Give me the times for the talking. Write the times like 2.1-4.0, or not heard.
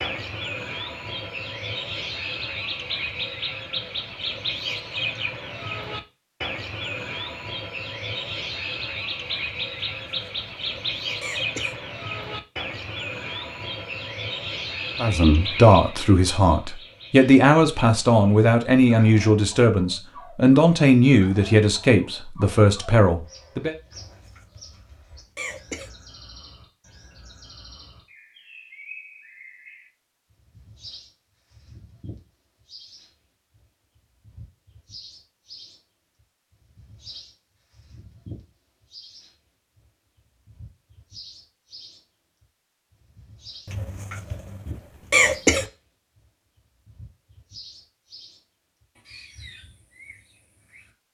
14.9-23.8.